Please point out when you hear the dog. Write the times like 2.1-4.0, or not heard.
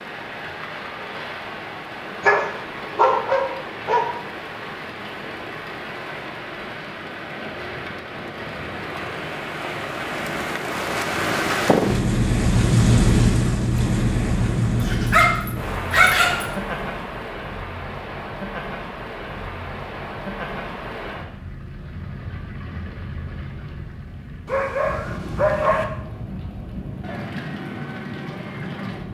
2.2-4.1, 14.8-16.4, 24.4-25.9.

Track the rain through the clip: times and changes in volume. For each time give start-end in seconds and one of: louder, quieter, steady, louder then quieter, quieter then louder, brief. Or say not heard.
0.0-29.1 louder then quieter.